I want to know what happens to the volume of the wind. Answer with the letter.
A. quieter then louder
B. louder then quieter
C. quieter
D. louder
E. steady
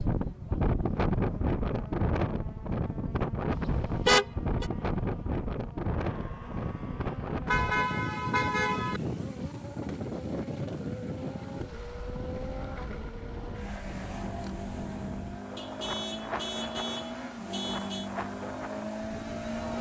C.